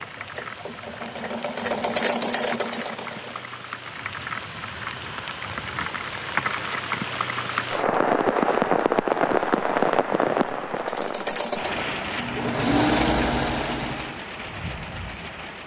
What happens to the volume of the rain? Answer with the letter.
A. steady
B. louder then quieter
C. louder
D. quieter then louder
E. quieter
B.